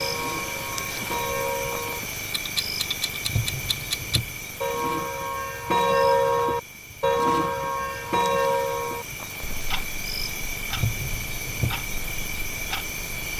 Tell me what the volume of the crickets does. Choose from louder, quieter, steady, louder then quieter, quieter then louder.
quieter then louder.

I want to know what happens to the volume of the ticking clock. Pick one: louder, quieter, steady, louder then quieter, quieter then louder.
louder then quieter.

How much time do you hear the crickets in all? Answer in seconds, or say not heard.
13 s.